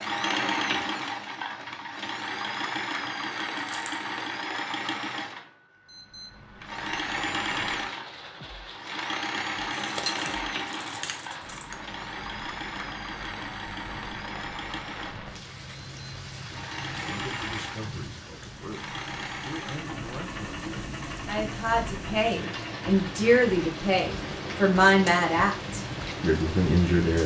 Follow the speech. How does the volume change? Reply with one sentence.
The loudness of the speech goes up.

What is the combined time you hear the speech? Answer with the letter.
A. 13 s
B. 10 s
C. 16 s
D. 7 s
B.